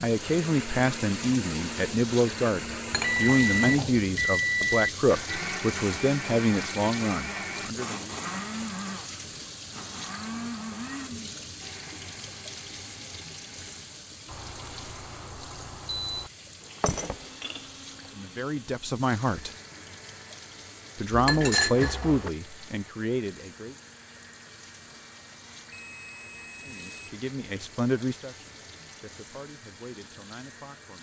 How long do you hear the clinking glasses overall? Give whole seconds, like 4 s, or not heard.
3 s.